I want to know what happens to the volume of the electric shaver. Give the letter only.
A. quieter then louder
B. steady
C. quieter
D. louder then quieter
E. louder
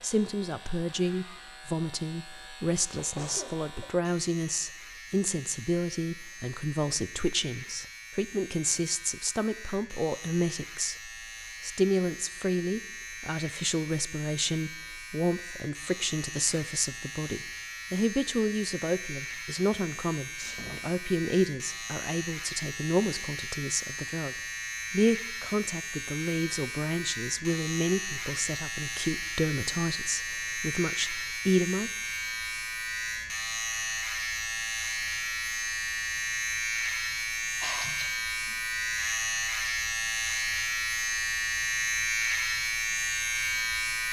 E.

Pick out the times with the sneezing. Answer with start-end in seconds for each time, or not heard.
3.0-3.7, 20.4-20.9, 37.6-38.5.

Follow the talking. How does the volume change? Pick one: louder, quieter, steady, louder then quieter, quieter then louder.
steady.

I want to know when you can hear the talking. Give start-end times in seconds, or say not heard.
0.0-31.9.